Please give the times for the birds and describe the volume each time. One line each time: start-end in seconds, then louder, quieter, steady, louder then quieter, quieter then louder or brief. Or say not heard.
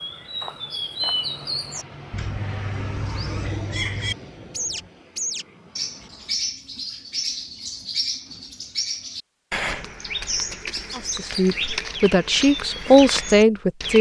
0.0-13.9 steady.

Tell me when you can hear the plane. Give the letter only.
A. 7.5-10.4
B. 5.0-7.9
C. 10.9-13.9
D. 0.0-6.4
D.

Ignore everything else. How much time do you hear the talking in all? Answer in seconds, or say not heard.
3 s.